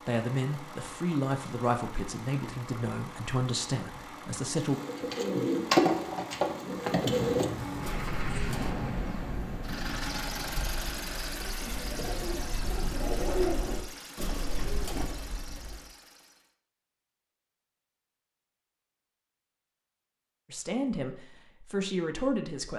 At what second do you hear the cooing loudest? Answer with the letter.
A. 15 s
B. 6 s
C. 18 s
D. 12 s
B.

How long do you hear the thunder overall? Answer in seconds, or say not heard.
3 s.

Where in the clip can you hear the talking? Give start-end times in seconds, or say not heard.
0.1-4.8, 20.5-22.7.